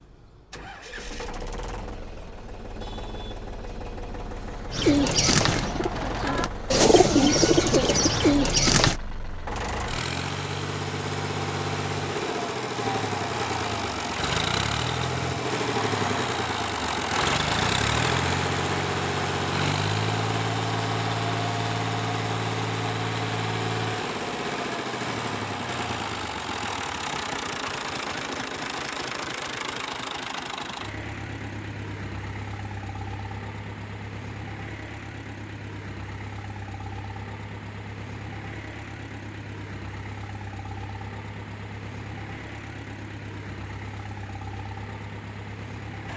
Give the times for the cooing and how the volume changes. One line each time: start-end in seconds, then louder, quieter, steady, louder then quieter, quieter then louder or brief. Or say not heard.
4.7-9.0 quieter then louder.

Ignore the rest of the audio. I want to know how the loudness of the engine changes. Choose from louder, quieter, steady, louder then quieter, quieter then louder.
louder then quieter.